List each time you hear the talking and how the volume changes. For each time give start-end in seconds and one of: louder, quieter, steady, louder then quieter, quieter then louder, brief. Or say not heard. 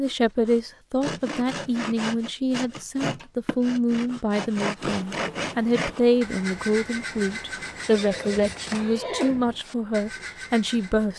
0.0-11.1 steady.